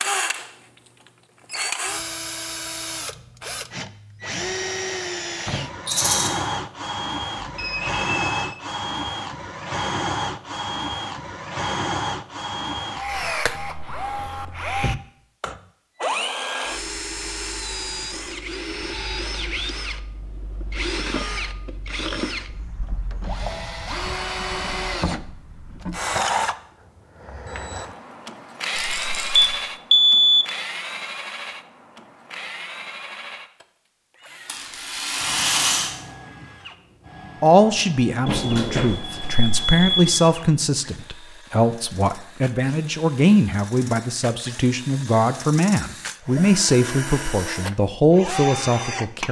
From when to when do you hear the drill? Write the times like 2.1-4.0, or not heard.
0.0-49.2.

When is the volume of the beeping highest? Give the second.
30 s.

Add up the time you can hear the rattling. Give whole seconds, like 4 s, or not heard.
3 s.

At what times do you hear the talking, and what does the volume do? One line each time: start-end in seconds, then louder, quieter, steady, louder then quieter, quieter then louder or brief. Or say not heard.
37.4-49.2 steady.